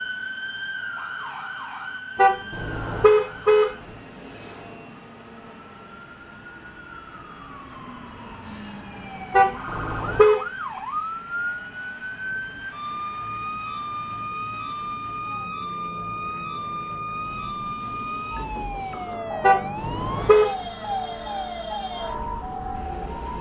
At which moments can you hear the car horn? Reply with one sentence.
The car horn can be heard from 2.1 to 3.8 s, from 9.3 to 10.4 s and from 19.4 to 20.5 s.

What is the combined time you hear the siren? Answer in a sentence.
You can hear the siren for 23 seconds altogether.